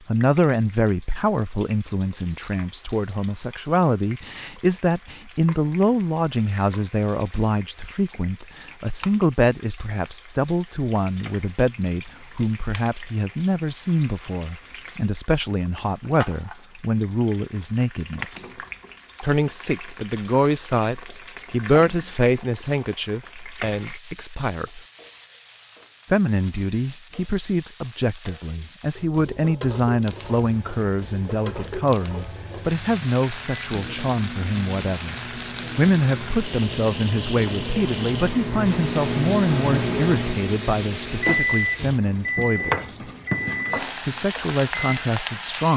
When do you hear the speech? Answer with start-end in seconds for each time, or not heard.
0.1-18.6, 19.2-24.8, 26.1-35.1, 35.8-43.0, 44.0-45.7.